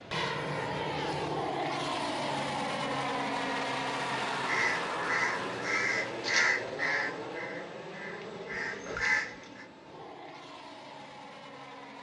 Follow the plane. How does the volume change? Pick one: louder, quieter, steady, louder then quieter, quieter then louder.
quieter.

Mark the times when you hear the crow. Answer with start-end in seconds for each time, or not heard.
4.5-9.7.